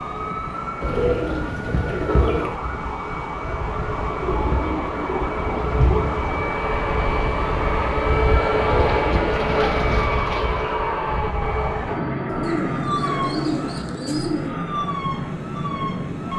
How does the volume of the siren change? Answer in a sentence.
The volume of the siren stays about the same.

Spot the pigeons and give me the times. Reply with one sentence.
You can hear the pigeons from 0.8 to 2.5 s, from 4.2 to 6.2 s, from 8.7 to 10.8 s and from 12.4 to 14.6 s.